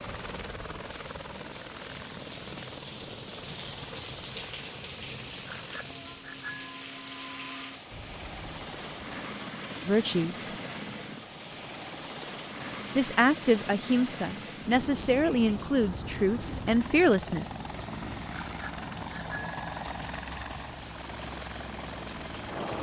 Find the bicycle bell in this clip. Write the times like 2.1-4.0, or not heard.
5.5-6.8, 18.4-19.9.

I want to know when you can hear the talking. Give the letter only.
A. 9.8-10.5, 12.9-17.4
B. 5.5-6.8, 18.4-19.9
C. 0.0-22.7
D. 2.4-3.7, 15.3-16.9
A.